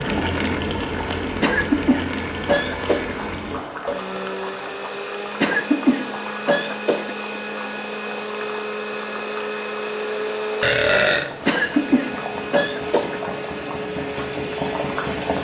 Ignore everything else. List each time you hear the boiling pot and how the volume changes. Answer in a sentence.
You can hear the boiling pot from 0.0 to 15.3 s, getting quieter then louder.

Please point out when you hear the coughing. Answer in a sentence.
You can hear the coughing from 1.4 to 3.1 s, from 5.4 to 7.2 s and from 11.4 to 13.2 s.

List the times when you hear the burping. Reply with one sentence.
The burping can be heard from 10.6 to 11.9 s.